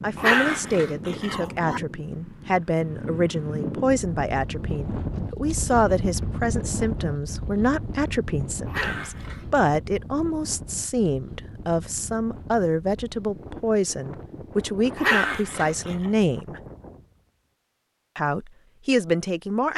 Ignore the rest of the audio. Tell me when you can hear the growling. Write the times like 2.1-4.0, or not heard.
0.1-1.8, 8.7-9.7, 14.9-16.1.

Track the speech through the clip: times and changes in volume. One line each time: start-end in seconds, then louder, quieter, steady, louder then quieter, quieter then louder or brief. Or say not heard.
0.0-16.6 steady
18.1-19.7 brief.